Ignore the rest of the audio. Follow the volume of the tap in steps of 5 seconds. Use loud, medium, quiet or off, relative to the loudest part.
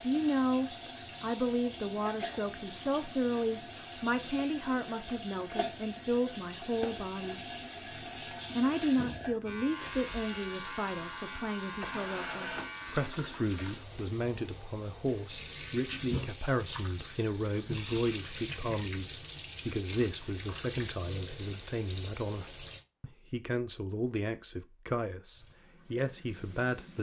loud, loud, loud, loud, loud, quiet.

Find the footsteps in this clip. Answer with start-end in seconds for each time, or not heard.
not heard.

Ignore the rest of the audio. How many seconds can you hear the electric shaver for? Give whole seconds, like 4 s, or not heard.
4 s.